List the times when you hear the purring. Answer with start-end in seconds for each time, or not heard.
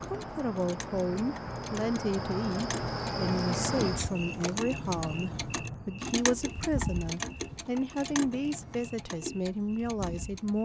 not heard.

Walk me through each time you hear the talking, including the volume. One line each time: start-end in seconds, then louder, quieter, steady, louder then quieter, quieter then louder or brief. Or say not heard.
0.0-10.5 steady.